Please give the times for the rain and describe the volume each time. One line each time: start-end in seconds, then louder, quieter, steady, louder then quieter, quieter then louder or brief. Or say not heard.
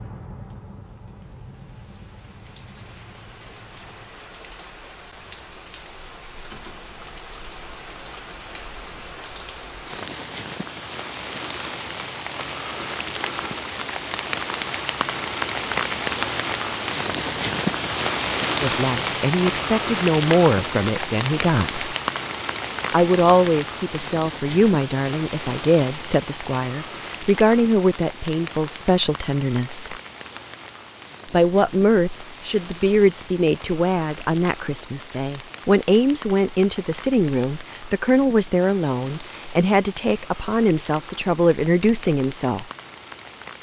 0.0-43.5 louder then quieter.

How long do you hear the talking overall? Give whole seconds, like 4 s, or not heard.
22 s.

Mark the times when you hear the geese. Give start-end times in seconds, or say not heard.
not heard.